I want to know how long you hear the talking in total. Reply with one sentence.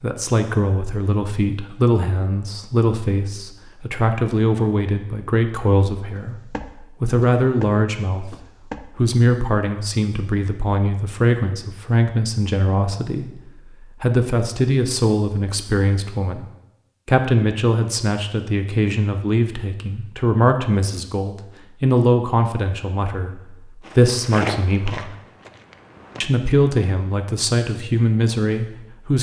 You can hear the talking for 26 seconds altogether.